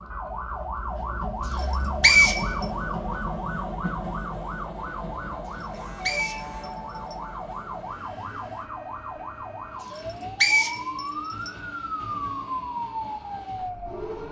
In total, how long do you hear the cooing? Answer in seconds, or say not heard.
not heard.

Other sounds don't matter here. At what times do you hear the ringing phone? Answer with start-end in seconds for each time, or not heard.
not heard.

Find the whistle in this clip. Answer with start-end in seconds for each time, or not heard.
1.6-2.6, 5.6-7.2, 9.9-11.5.